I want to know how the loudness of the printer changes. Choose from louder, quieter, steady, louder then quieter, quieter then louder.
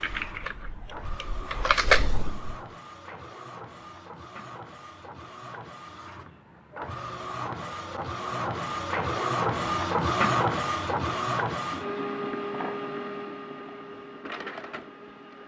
louder then quieter.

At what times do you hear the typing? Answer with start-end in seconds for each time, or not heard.
0.0-2.5.